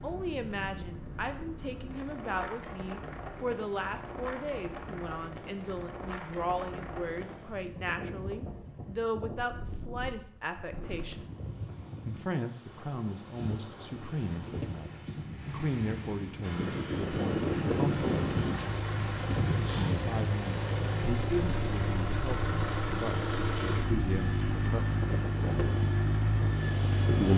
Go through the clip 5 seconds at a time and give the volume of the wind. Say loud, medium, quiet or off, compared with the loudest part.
medium, medium, medium, loud, medium, loud.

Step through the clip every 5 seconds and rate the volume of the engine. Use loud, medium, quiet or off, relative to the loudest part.
off, off, off, medium, loud, loud.